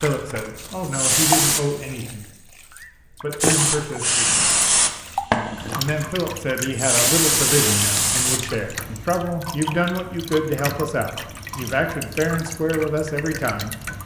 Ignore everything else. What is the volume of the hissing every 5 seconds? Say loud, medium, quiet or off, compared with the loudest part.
loud, loud, off.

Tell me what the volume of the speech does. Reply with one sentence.
The loudness of the speech stays about the same.